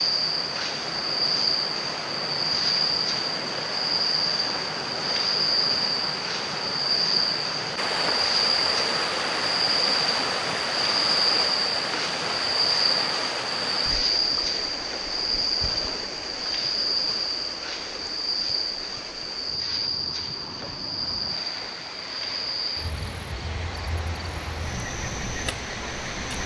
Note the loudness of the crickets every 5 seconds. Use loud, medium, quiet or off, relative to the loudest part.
loud, loud, loud, loud, medium, medium.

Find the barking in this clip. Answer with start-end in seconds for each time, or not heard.
not heard.